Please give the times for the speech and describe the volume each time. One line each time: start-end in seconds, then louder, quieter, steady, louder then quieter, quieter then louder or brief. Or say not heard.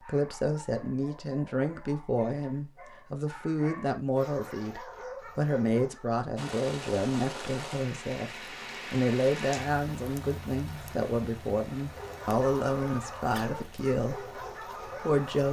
0.1-15.4 steady.